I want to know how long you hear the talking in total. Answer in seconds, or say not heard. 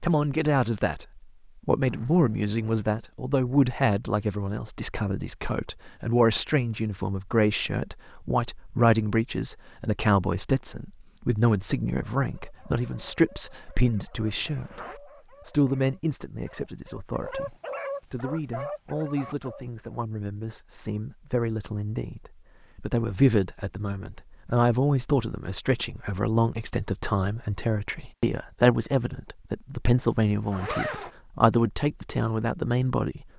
33 s.